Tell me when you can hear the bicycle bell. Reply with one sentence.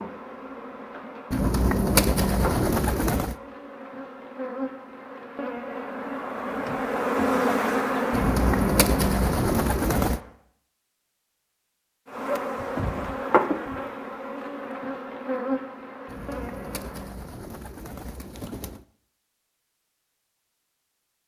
You can't hear the bicycle bell here.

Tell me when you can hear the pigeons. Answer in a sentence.
The pigeons can be heard from 1.3 to 3.4 s, from 8.1 to 10.2 s and from 16.1 to 18.9 s.